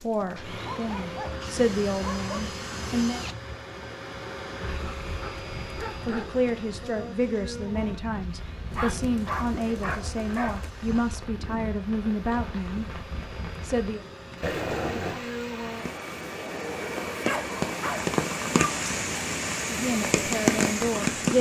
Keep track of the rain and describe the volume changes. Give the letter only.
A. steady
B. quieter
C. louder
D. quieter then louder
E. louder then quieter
C.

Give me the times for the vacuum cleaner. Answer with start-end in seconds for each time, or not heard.
0.0-21.1.